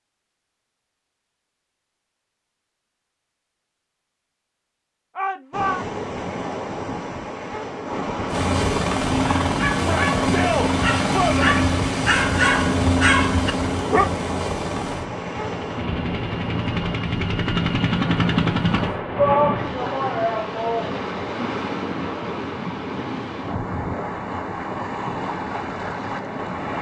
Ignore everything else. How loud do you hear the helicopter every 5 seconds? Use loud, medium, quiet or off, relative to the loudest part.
off, loud, loud, loud, off, off.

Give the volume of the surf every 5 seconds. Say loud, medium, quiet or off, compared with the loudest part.
off, loud, loud, loud, loud, loud.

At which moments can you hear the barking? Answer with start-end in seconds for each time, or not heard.
9.4-14.1.